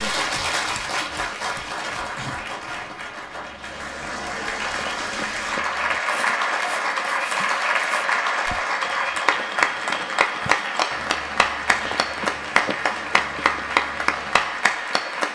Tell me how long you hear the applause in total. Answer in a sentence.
The applause can be heard for 15 seconds in total.